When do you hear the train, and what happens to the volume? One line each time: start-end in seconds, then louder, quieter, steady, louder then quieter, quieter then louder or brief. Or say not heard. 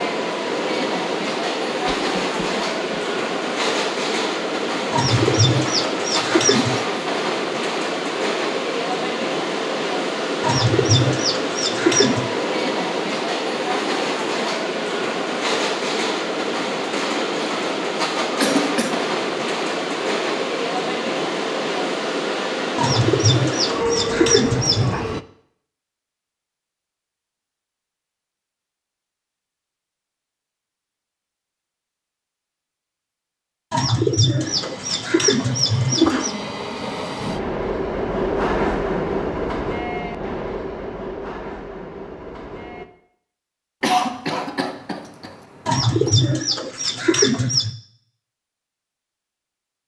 0.0-25.2 steady
34.4-42.9 louder then quieter.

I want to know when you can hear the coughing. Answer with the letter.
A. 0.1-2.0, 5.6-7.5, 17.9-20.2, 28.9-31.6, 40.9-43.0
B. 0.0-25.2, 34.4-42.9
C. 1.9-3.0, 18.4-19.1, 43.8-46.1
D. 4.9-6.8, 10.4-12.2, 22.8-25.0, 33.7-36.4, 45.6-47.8
C.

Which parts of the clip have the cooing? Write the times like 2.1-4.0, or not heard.
4.9-6.8, 10.4-12.2, 22.8-25.0, 33.7-36.4, 45.6-47.8.